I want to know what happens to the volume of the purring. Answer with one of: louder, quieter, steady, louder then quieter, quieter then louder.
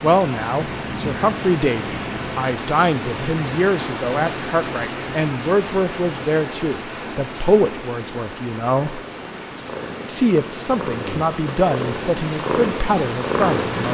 louder.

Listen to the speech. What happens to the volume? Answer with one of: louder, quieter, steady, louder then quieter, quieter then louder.
steady.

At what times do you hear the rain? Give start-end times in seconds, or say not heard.
0.0-13.8.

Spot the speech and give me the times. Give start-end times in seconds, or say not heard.
0.0-9.0, 10.1-13.8.